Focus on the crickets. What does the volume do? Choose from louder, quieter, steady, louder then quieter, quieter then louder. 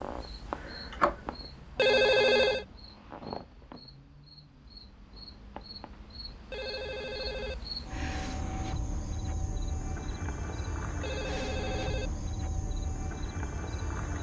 quieter then louder.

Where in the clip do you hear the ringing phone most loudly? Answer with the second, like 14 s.
2 s.